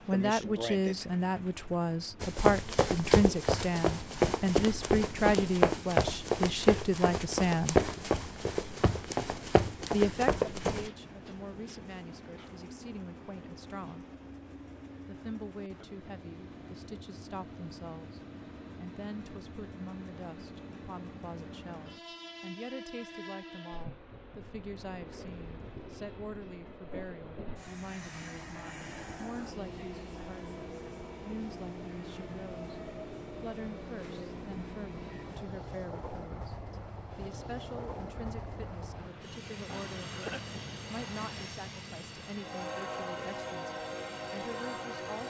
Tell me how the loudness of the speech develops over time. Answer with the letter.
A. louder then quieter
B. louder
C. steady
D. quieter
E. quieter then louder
D.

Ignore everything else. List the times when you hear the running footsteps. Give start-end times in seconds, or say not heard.
2.2-10.9.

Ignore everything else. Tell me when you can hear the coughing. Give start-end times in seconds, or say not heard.
0.1-1.1, 39.6-40.5.